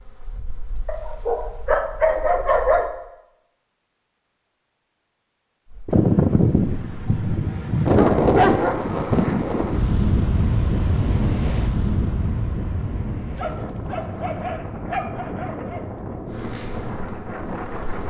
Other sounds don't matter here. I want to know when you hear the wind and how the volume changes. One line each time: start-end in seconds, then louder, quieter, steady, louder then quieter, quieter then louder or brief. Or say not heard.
5.8-18.0 quieter.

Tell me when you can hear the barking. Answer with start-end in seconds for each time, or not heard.
0.8-2.9, 7.9-8.8, 13.3-15.8.